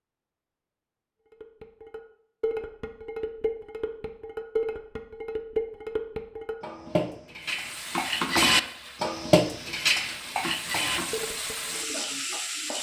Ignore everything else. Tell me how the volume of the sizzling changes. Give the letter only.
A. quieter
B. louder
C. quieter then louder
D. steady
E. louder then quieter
C.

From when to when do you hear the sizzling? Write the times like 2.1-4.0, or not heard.
7.5-12.7.